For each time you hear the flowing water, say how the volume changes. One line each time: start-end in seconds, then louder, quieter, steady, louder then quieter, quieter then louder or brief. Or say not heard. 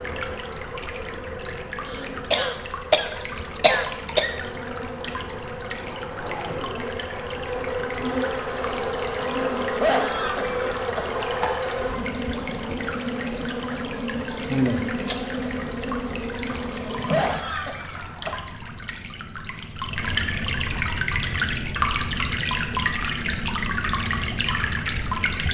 0.0-25.4 louder.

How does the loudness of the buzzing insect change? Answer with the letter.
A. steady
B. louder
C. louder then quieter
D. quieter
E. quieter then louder
B.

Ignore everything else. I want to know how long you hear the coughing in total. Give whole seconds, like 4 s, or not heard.
6 s.